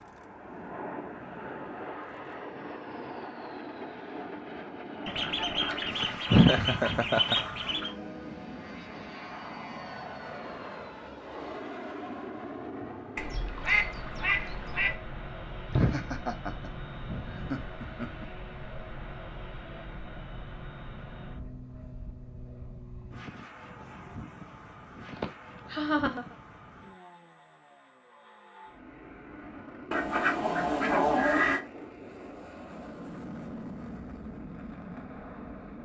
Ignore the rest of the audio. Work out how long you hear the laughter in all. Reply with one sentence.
You can hear the laughter for 5 seconds altogether.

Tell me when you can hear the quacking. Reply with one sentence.
The quacking can be heard from 5.0 to 7.9 s, from 13.2 to 14.9 s and from 29.9 to 31.6 s.